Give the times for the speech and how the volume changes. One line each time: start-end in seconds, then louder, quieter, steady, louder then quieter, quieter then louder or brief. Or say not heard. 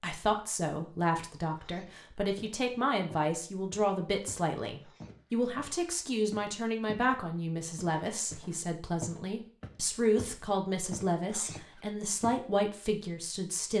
0.0-13.7 steady.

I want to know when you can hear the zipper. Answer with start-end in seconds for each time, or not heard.
not heard.